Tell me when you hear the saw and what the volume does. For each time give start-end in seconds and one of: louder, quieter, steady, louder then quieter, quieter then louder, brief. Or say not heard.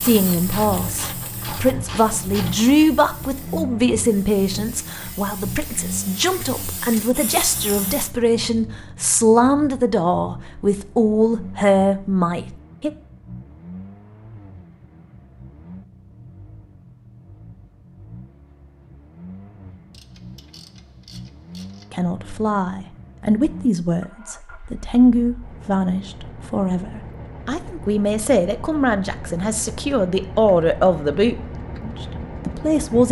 not heard.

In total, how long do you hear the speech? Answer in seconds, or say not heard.
24 s.